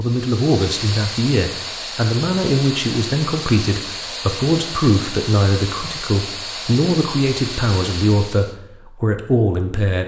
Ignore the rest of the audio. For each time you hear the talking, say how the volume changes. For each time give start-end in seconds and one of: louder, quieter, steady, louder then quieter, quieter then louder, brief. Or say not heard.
0.0-10.0 steady.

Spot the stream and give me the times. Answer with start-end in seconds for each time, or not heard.
0.0-8.6.